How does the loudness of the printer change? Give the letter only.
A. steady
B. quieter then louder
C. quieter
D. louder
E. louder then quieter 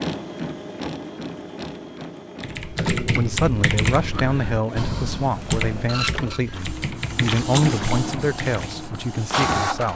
B.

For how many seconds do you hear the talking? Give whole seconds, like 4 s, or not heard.
7 s.